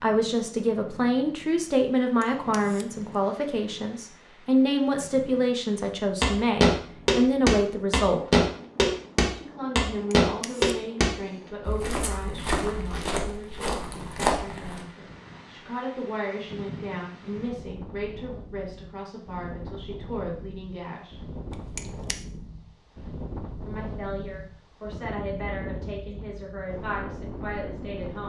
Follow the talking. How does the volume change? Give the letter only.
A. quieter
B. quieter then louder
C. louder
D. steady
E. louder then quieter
A.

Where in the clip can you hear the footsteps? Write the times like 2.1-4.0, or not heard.
6.2-14.8.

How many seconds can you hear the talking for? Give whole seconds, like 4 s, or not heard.
25 s.